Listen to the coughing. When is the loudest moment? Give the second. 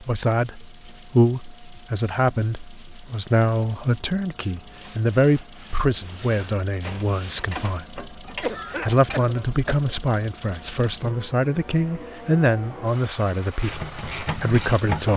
9 s.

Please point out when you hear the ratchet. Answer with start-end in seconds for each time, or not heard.
5.9-9.3, 13.6-15.1.